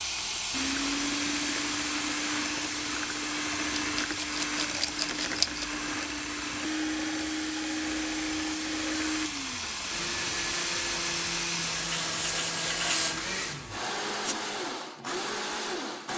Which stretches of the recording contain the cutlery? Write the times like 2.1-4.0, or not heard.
not heard.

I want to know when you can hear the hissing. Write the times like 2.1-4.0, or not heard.
0.0-14.3.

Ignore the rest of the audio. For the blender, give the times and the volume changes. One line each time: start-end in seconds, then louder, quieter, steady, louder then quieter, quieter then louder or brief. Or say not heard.
0.0-16.1 steady.